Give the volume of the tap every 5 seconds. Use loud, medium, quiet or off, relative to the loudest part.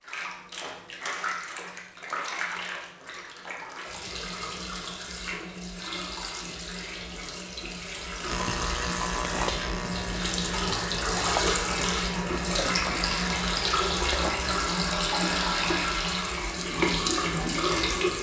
medium, medium, loud, loud.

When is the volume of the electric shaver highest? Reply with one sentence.
The loudest moment of the electric shaver is at 9 seconds.